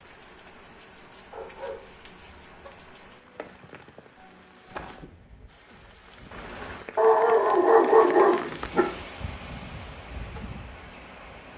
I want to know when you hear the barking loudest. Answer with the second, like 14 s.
8 s.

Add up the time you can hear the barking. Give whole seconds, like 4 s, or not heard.
3 s.